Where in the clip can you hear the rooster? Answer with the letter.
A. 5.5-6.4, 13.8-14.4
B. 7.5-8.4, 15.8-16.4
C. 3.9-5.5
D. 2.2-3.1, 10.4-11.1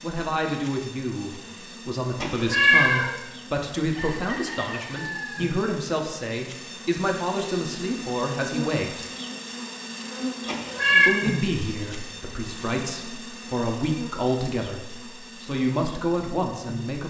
C.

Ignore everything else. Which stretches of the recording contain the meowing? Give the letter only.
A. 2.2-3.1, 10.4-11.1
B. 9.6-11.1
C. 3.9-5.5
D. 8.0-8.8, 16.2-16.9
A.